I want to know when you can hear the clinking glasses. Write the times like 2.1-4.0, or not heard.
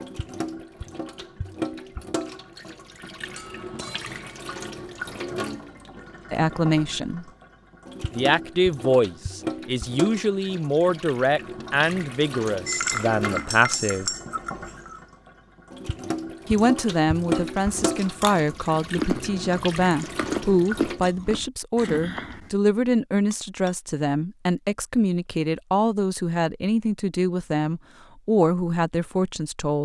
3.3-4.2, 12.7-15.0, 23.3-23.8.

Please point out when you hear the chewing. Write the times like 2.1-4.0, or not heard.
17.3-22.5.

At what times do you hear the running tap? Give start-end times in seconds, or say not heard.
0.0-21.0.